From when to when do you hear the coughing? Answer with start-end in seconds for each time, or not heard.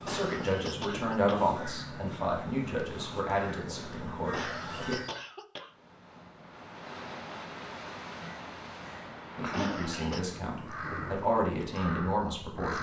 0.1-1.6, 4.3-5.7, 9.5-10.2.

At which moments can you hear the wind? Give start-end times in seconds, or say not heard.
5.7-12.7.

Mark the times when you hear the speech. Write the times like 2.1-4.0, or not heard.
0.0-5.0, 9.3-12.7.